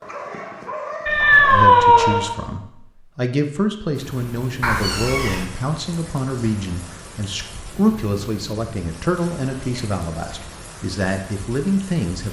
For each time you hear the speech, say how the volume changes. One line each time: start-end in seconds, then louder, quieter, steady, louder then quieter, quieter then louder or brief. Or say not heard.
1.5-12.2 steady.